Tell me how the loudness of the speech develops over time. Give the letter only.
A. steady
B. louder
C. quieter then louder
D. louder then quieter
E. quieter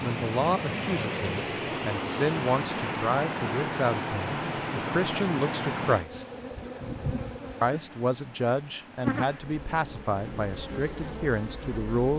A.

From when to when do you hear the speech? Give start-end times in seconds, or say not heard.
0.0-6.2, 7.6-12.1.